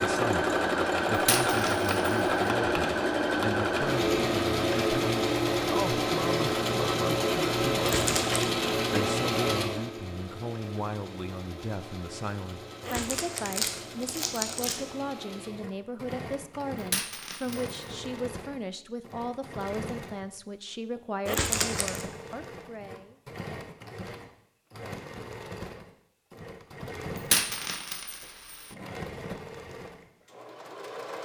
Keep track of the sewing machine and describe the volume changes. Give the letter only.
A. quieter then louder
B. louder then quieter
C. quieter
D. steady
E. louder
C.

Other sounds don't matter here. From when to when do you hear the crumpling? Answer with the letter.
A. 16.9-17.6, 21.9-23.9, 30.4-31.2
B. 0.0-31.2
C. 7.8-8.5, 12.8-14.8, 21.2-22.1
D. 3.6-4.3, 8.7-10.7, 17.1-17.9
C.